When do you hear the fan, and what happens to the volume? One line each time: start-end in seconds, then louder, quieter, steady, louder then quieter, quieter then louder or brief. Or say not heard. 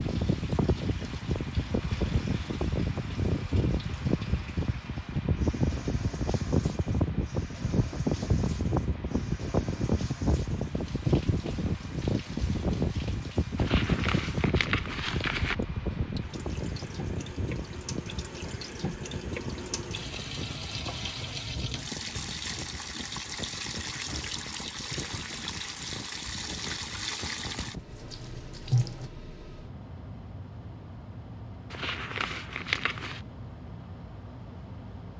0.0-35.1 quieter.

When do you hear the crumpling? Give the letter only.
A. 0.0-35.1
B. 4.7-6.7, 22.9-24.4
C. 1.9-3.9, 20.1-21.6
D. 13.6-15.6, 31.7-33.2
D.